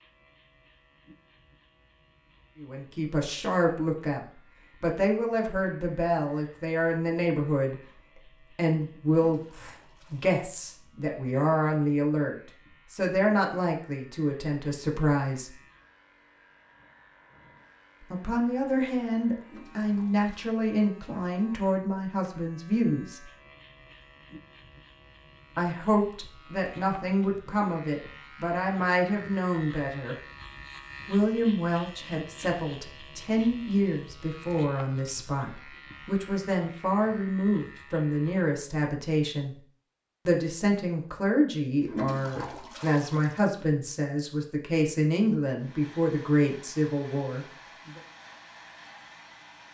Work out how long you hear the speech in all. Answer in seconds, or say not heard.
39 s.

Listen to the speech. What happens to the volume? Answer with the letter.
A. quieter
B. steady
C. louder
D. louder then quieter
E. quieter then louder
B.